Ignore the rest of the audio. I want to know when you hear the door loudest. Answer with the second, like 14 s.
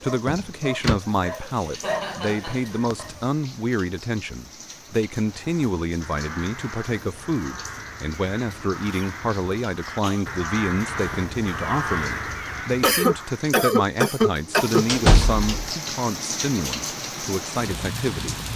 15 s.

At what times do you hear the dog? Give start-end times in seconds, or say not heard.
0.0-3.2.